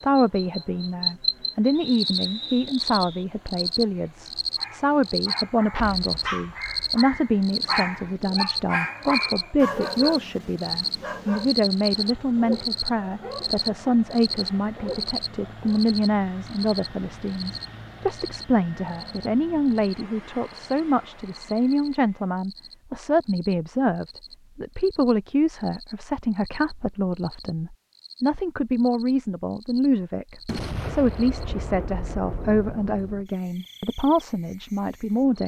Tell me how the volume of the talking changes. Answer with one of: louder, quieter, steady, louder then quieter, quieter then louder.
steady.